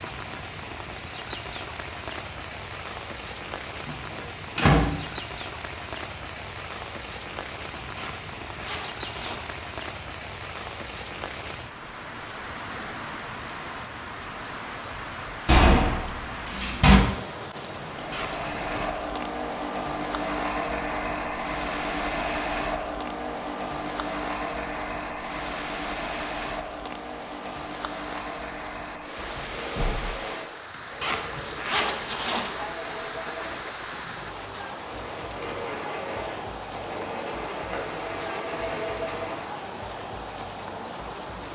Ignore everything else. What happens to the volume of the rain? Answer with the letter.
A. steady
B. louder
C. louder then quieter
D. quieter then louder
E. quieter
A.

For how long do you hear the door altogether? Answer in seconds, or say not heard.
3 s.